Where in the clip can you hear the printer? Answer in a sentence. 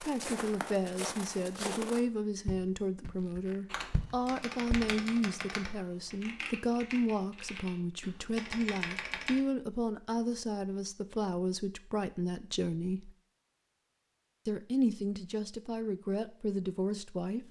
You can't hear the printer here.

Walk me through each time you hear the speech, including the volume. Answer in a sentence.
The speech can be heard from 0.0 to 13.2 s, at a steady volume; and briefly from 14.4 to 17.4 s.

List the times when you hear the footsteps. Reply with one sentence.
The footsteps can be heard from 0.0 to 5.0 s.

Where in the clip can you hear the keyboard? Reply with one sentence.
You can hear the keyboard from 3.6 to 9.4 s.